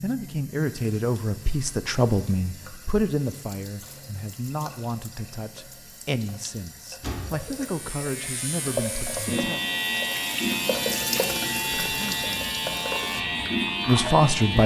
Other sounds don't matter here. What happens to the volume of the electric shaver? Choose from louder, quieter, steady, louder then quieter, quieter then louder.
louder.